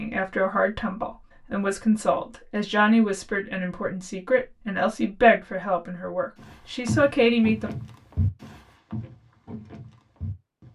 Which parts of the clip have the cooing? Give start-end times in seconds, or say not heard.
not heard.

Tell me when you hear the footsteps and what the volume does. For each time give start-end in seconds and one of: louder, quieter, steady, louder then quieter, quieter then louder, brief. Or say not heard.
6.4-10.7 quieter.